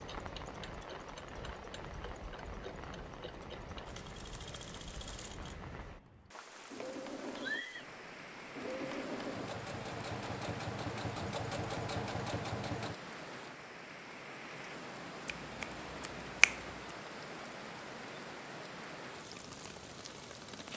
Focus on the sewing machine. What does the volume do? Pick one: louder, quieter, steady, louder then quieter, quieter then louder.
louder.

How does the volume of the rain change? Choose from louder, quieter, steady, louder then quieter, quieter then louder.
steady.